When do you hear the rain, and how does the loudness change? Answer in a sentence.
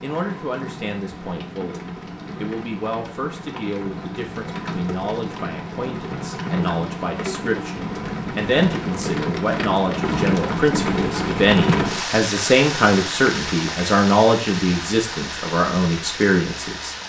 The rain can be heard from 0.0 to 17.0 s, getting louder then quieter.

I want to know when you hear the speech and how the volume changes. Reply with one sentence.
The speech can be heard from 0.0 to 17.0 s, getting louder.